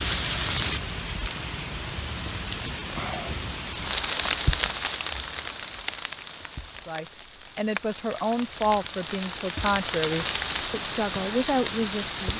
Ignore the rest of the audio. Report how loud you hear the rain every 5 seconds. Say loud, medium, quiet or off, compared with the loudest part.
loud, medium, loud.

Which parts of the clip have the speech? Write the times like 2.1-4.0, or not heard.
6.8-12.3.